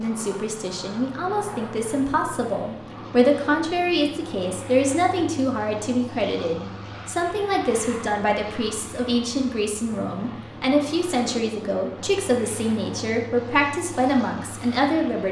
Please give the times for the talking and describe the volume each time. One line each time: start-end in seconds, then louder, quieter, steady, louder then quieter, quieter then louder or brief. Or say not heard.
0.0-15.2 steady.